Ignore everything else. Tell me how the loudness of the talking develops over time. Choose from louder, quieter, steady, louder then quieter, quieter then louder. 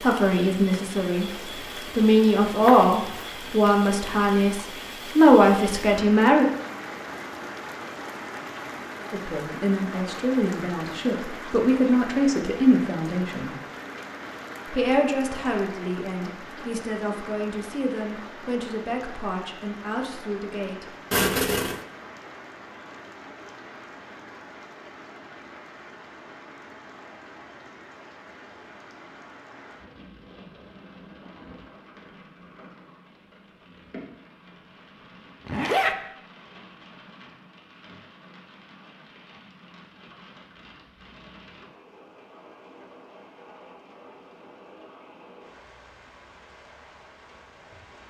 quieter.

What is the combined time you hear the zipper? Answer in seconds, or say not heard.
2 s.